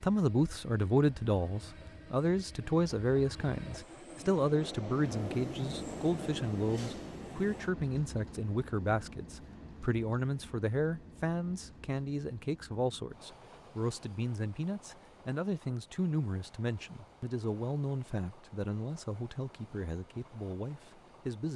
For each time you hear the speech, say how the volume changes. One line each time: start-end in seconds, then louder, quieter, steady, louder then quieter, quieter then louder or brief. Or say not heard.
0.0-21.5 quieter.